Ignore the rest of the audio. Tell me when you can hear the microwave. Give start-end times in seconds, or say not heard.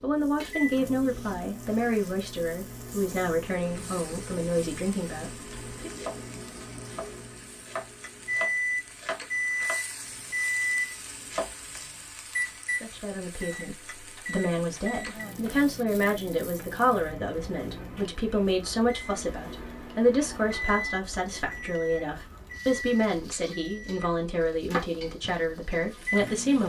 0.0-26.6.